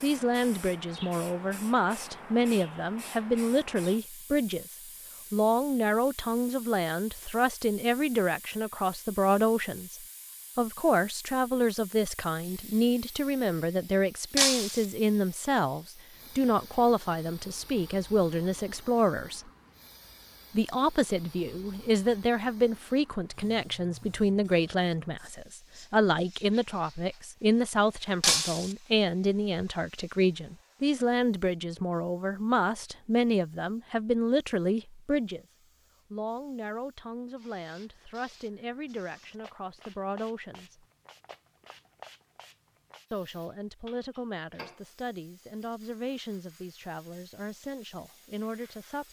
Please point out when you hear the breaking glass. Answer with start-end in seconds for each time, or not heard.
14.3-14.8, 28.2-28.8.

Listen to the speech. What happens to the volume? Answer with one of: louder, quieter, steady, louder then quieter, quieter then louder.
quieter.